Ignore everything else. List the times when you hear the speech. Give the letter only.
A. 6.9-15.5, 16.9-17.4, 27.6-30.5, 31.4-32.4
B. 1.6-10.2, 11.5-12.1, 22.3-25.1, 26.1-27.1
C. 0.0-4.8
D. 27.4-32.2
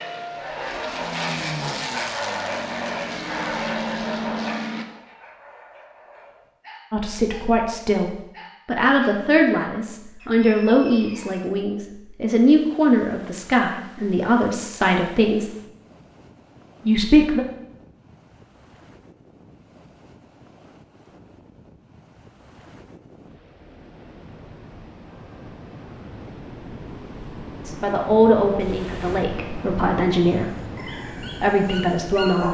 A.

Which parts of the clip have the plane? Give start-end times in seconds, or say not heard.
0.0-4.8.